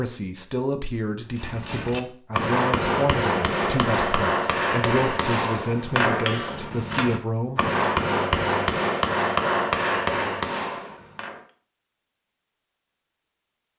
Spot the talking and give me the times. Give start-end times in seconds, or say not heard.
0.0-7.7.